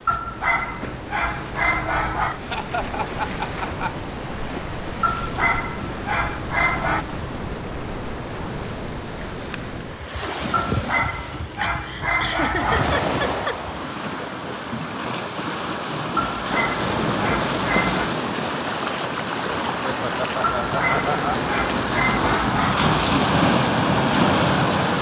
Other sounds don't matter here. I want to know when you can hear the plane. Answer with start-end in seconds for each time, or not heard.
not heard.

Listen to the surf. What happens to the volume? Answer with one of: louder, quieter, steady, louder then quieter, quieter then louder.
louder.